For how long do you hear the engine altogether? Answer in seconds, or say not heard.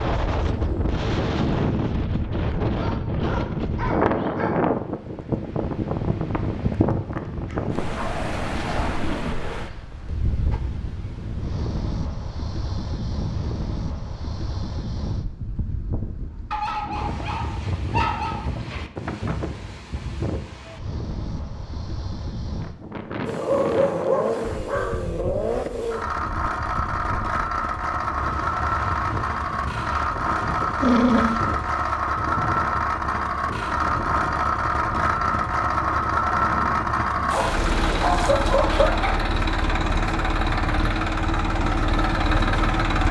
20 s.